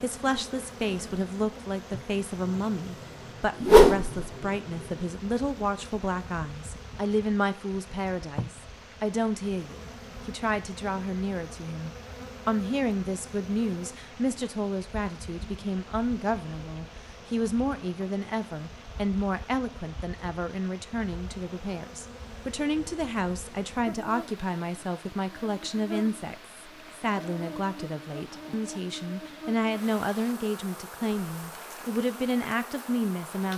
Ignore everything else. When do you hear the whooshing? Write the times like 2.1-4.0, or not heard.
3.6-4.2.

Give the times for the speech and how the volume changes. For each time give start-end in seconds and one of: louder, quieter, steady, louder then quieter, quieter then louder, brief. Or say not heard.
0.0-33.5 steady.